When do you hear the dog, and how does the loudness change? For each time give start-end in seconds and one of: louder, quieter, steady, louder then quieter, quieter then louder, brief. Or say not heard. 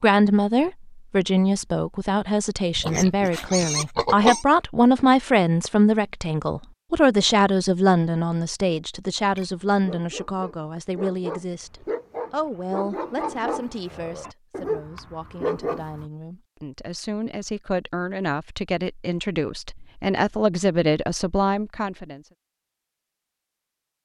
9.3-16.1 louder.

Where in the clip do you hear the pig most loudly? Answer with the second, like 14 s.
4 s.